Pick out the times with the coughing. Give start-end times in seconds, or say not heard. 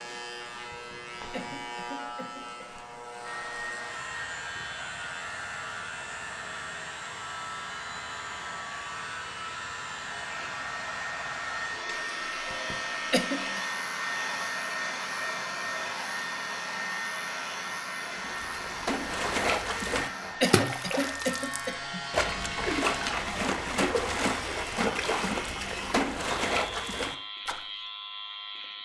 0.7-2.6, 12.5-13.6, 19.8-22.0.